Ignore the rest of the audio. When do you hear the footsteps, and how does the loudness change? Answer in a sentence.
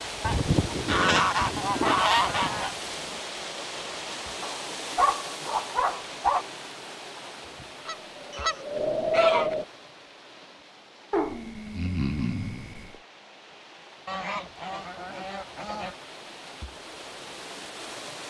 The footsteps can't be heard in this clip.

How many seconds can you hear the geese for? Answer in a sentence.
You can hear the geese for 6 seconds altogether.